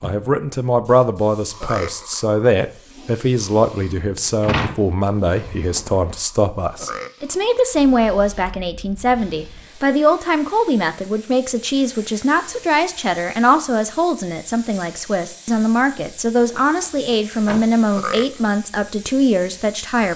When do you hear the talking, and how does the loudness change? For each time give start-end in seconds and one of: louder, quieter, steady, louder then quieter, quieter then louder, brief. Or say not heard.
0.0-20.1 steady.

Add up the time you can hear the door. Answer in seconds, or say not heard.
3 s.